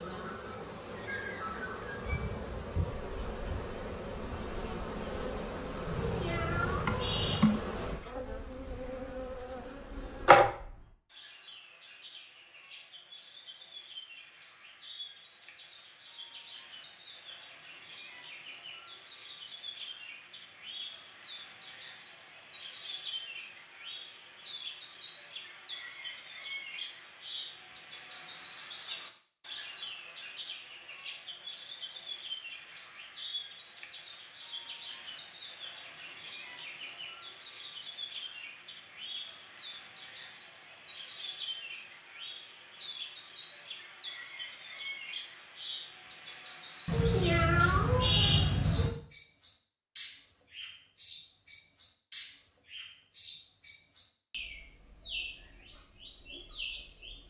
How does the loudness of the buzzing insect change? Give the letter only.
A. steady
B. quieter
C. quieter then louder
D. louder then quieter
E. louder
D.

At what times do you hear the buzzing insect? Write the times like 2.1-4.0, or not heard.
0.0-10.5.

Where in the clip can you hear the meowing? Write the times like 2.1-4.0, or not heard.
5.8-7.5, 46.9-48.9.